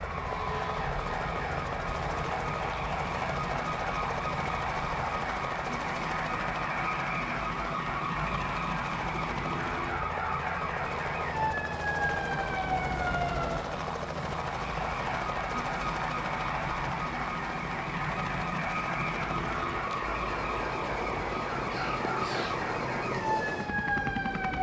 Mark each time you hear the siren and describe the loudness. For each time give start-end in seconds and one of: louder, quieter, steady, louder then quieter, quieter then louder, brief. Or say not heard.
0.0-24.5 steady.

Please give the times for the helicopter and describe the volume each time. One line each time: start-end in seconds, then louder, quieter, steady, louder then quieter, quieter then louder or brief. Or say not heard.
0.0-24.5 steady.